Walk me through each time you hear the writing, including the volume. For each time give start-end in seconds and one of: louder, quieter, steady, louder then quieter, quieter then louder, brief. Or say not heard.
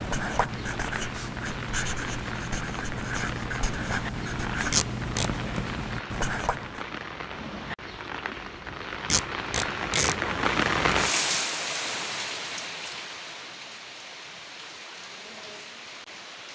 0.0-6.8 steady.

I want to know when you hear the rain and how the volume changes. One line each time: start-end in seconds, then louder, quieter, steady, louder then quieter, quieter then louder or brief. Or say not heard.
0.0-16.4 louder then quieter.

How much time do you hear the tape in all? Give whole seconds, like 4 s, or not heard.
2 s.